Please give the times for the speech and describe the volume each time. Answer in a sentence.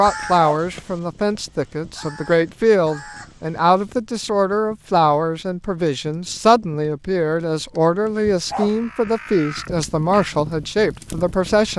You can hear the speech from 0.0 to 11.7 s, at a steady volume.